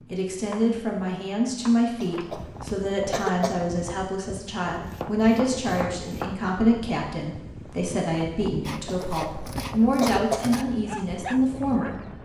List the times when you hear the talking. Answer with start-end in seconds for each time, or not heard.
0.1-12.1.